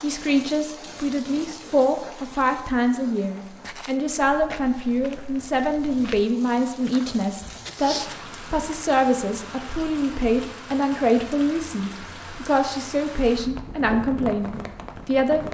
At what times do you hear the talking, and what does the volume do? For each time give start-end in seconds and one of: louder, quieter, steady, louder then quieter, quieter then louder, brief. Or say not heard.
0.0-15.4 steady.